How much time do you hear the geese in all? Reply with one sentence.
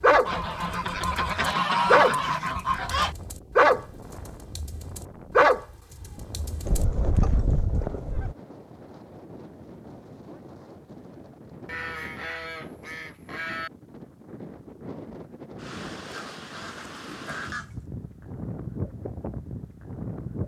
The geese can be heard for 8 seconds in total.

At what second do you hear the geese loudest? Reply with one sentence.
The loudest moment of the geese is at 2 seconds.